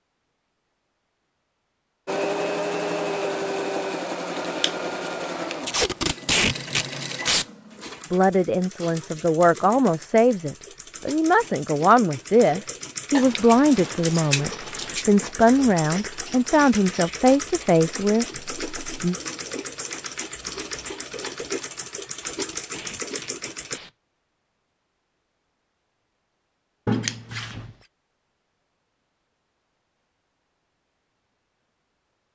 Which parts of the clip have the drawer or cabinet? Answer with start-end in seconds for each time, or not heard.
not heard.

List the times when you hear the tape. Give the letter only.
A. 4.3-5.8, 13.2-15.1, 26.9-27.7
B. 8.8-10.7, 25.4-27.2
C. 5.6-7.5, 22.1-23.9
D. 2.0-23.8
C.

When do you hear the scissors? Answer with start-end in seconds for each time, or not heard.
4.3-5.8, 13.2-15.1, 26.9-27.7.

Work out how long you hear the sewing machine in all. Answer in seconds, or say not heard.
22 s.